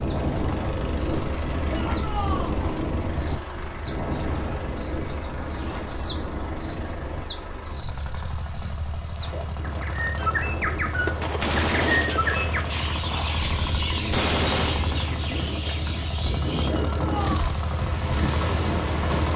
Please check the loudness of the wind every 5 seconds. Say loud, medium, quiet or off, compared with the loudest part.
loud, medium, medium, loud.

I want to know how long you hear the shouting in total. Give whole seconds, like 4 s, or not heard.
2 s.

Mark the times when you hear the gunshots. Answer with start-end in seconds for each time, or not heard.
10.4-14.8.